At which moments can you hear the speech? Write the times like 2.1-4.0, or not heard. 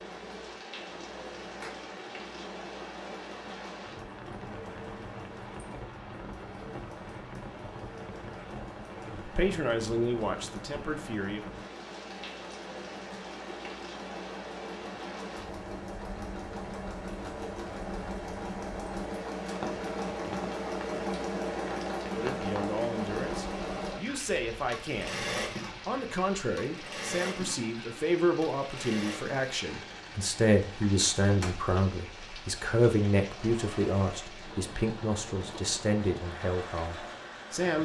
9.2-11.4, 22.1-37.8.